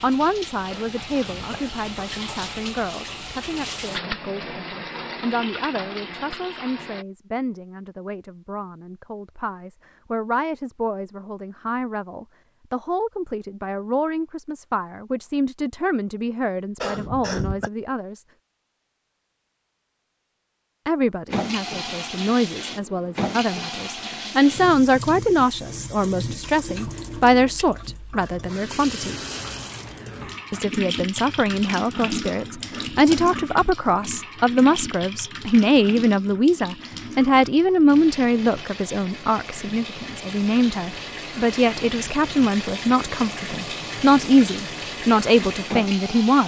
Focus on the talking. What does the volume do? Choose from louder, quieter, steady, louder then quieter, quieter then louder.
louder.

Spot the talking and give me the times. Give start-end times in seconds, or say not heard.
0.0-18.2, 20.9-29.2, 30.5-46.4.